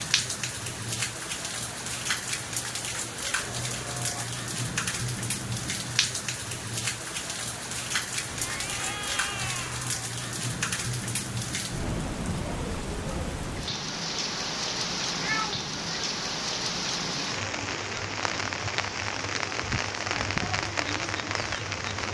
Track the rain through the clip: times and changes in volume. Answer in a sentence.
The rain can be heard from 0.0 to 22.0 s, at a steady volume.